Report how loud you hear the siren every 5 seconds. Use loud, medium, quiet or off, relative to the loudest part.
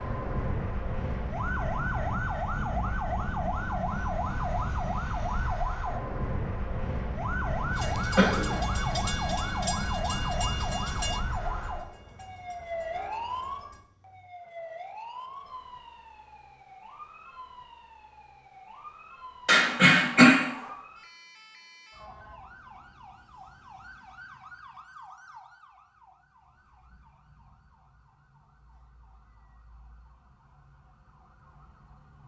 loud, loud, loud, quiet, quiet, quiet, quiet.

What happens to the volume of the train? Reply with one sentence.
The loudness of the train goes down.